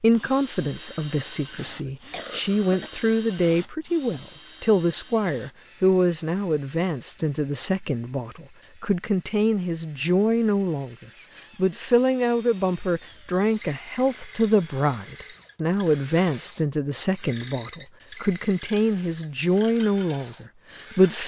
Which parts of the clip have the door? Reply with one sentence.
The door can't be heard in this clip.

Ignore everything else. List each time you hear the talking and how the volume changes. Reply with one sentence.
You can hear the talking from 0.0 to 21.2 s, at a steady volume.